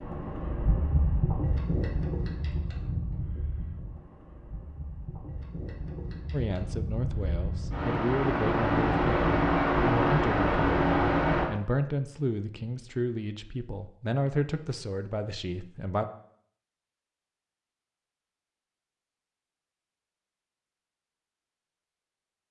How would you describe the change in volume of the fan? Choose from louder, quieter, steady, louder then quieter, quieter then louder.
quieter then louder.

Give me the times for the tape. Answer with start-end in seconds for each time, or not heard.
not heard.